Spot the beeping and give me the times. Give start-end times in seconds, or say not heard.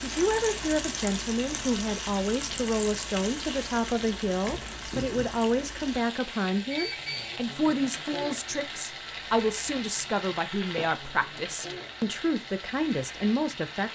6.7-7.3.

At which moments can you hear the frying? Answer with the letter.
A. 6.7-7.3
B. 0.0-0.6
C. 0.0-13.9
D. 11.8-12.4
C.